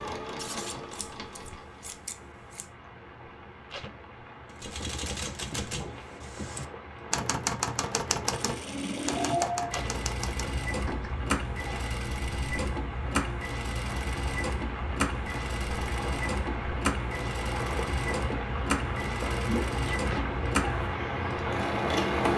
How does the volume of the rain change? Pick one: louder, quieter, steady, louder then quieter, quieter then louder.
louder.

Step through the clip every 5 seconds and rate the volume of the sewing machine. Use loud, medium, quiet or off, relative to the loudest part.
medium, loud, loud, loud, loud.